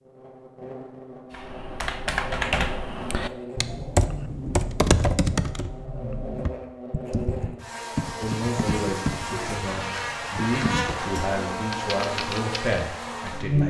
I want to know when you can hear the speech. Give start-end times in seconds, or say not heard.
8.2-13.6.